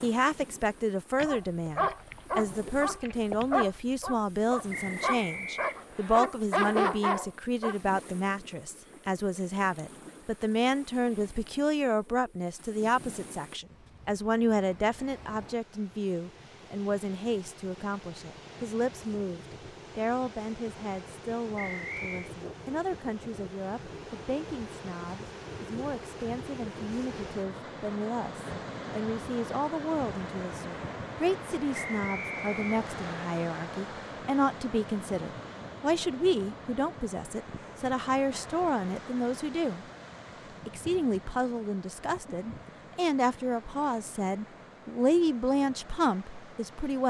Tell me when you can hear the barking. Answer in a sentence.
You can hear the barking from 1.1 to 7.8 s.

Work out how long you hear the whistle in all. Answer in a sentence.
The whistle can be heard for 4 seconds in total.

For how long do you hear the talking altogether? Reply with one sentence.
You can hear the talking for 46 seconds altogether.